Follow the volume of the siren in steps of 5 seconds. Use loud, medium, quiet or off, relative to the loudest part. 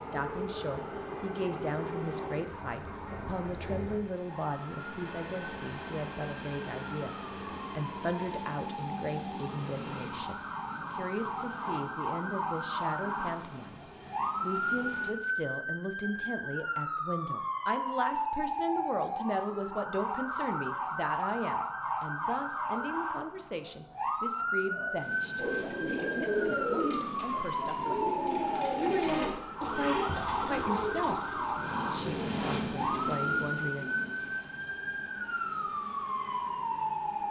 quiet, medium, loud, loud, loud, loud, loud, loud.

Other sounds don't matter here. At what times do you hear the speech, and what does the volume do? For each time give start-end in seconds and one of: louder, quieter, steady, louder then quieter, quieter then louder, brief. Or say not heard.
0.0-33.9 steady.